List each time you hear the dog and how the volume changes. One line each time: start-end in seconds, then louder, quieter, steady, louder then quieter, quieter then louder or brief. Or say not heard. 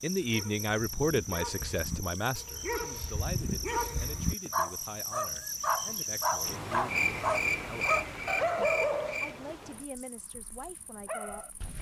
0.2-11.5 louder then quieter.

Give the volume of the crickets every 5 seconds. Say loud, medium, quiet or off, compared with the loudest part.
medium, loud, quiet.